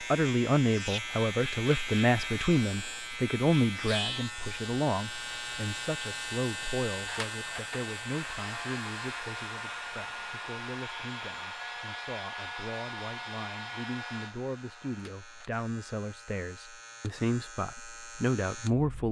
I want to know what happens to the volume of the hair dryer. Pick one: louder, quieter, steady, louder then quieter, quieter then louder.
steady.